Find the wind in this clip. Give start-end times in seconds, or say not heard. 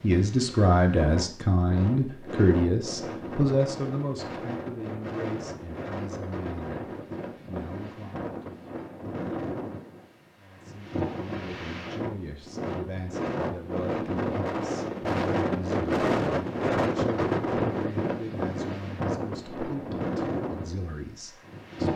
0.0-21.9.